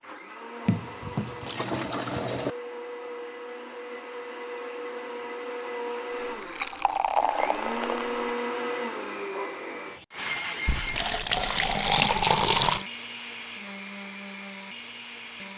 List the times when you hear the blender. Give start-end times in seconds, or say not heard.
0.0-15.5.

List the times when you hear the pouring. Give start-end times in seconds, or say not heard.
0.7-2.5, 6.1-8.3, 10.7-12.8.